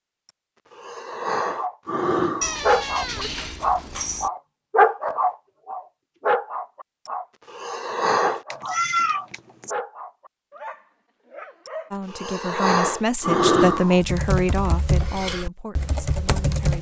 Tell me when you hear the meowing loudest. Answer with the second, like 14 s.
9 s.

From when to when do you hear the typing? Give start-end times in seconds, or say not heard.
13.9-16.7.